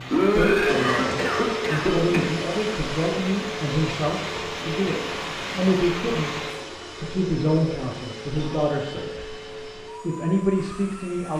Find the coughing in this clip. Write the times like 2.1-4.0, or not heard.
0.1-2.2, 8.3-9.1.